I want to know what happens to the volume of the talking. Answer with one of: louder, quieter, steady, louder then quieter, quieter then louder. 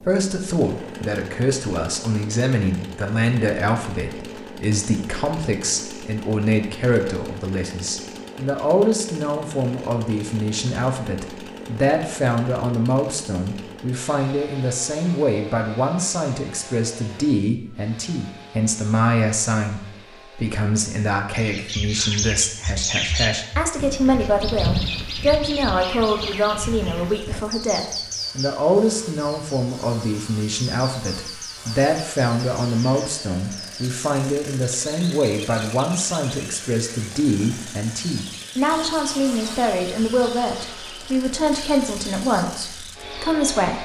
steady.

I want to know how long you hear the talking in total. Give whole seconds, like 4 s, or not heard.
44 s.